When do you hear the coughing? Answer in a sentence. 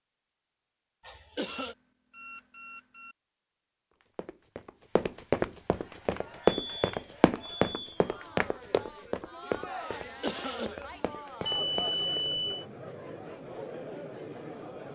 The coughing can be heard from 1.1 to 1.8 s and from 9.9 to 10.9 s.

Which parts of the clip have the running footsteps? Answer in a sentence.
The running footsteps can be heard from 4.2 to 12.3 s.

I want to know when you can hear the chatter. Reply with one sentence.
You can hear the chatter from 5.7 to 14.9 s.